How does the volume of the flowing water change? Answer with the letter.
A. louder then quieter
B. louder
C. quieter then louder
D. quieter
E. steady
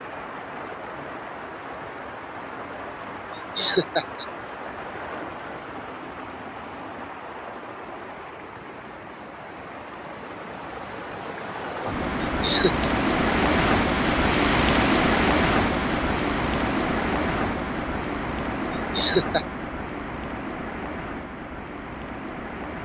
A.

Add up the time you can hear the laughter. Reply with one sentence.
You can hear the laughter for 2 seconds altogether.